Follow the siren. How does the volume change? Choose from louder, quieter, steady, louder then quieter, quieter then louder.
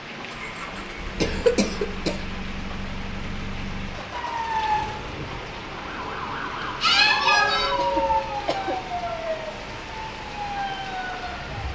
louder then quieter.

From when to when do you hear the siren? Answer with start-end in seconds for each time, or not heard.
4.1-11.7.